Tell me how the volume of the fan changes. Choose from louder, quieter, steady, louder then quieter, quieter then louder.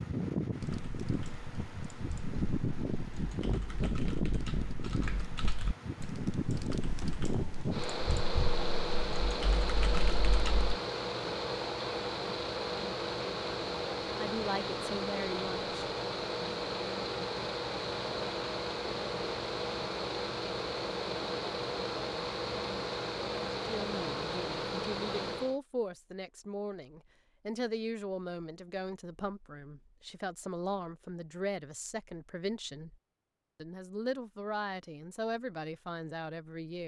steady.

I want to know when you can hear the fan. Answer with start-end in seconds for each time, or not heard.
0.0-25.6.